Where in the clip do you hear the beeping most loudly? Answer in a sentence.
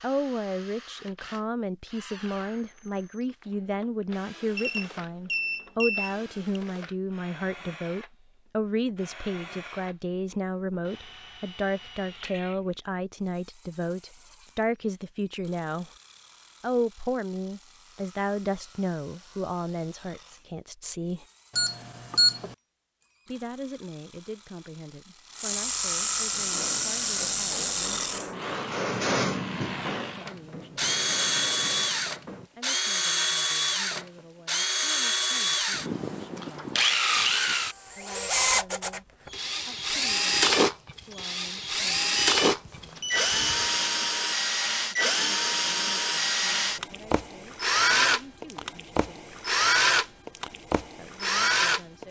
The loudest moment of the beeping is at 22 seconds.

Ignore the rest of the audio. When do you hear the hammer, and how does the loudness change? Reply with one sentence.
You can hear the hammer from 26.3 to 32.5 s, getting louder then quieter.